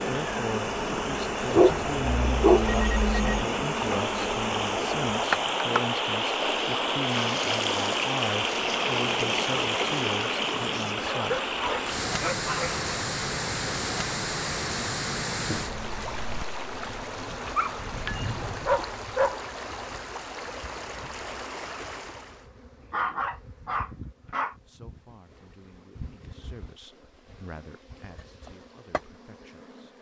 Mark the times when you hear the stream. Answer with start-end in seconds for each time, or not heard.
0.0-22.4.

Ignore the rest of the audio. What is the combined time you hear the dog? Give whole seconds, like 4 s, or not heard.
7 s.